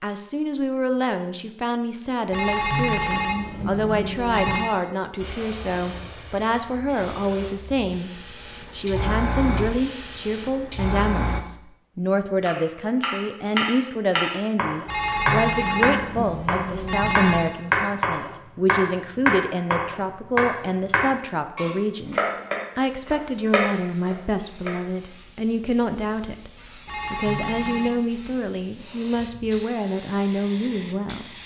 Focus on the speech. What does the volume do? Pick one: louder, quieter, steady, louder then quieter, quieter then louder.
steady.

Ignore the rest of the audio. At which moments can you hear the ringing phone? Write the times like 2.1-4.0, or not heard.
2.3-4.8, 14.8-17.6, 26.9-28.0.